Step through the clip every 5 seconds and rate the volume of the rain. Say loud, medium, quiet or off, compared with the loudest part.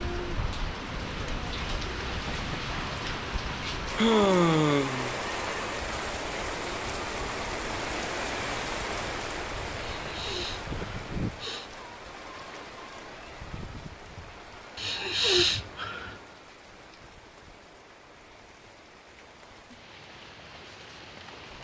loud, loud, medium, quiet, quiet.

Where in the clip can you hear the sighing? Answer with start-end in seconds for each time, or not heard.
4.0-5.2, 9.8-11.7, 14.8-16.1.